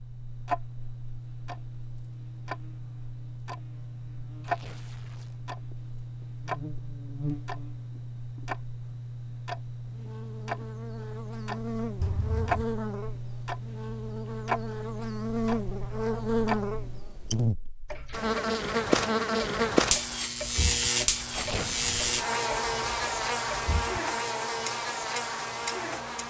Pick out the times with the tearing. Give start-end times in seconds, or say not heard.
4.4-5.3, 21.3-22.2.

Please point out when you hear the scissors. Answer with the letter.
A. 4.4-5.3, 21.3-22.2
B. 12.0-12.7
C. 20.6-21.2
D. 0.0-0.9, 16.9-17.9
B.